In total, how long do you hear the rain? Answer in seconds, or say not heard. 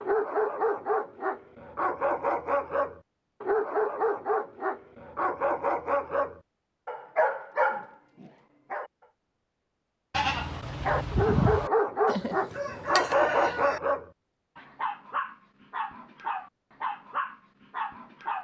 not heard.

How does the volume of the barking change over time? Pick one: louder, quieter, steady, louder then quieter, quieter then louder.
quieter.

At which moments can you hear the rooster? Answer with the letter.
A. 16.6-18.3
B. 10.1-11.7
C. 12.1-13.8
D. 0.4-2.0
C.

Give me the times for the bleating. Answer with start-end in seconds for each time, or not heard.
10.1-11.7.